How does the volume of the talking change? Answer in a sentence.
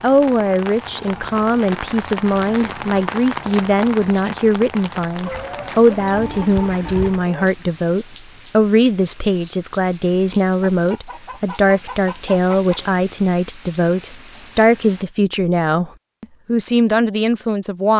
The volume of the talking stays about the same.